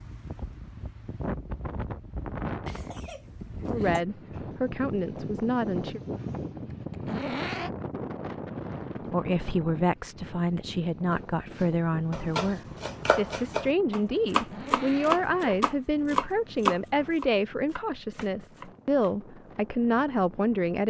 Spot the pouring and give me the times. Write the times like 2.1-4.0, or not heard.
not heard.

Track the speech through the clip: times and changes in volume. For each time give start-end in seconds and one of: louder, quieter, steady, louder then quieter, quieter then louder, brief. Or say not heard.
3.7-6.0 brief
9.1-20.8 steady.